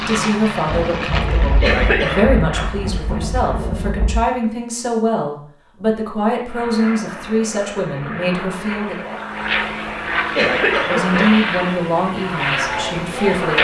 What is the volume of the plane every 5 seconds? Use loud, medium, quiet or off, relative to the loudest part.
medium, medium, loud.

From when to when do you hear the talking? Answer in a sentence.
You can hear the talking from 0.0 to 9.2 s and from 10.8 to 13.5 s.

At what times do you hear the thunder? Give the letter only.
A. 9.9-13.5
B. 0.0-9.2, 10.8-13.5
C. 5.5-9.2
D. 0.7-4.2
D.